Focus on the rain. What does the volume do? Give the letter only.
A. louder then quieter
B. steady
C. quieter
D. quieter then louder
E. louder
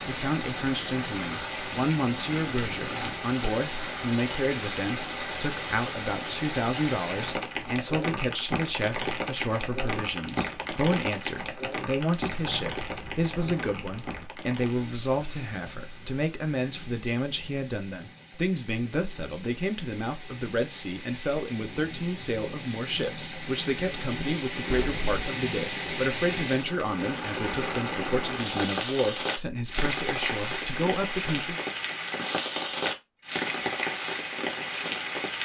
D.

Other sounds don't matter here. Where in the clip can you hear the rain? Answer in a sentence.
The rain can be heard from 0.0 to 35.3 s.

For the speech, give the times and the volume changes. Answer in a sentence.
The speech can be heard from 0.1 to 31.6 s, at a steady volume.